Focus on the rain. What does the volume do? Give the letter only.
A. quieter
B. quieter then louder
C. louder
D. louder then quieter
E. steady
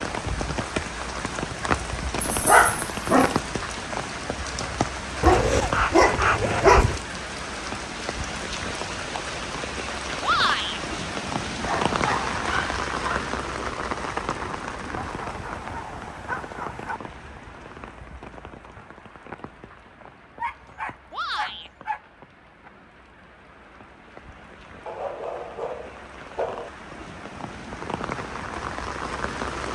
B.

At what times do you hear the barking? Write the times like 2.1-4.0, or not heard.
2.2-3.4, 5.2-7.0, 11.6-13.3, 14.9-17.0, 20.4-22.0, 24.9-26.7.